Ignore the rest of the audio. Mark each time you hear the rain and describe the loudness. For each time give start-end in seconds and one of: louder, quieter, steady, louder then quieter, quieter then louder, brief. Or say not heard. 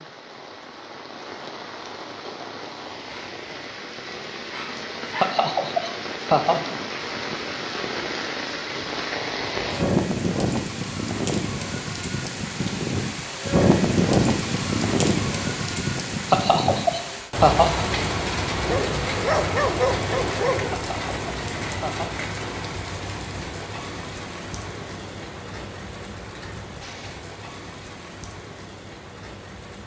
0.0-29.8 louder then quieter.